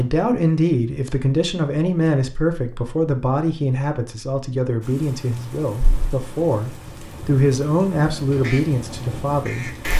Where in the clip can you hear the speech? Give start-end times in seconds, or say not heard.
0.0-9.8.